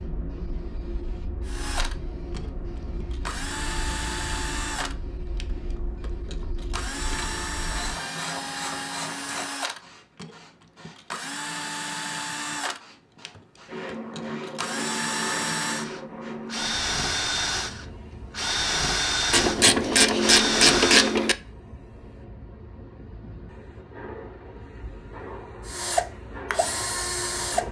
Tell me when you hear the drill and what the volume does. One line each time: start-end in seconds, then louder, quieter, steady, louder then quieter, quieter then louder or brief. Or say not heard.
1.4-21.1 louder
25.6-27.6 brief.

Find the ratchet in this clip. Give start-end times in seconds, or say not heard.
7.1-9.6, 19.3-21.4.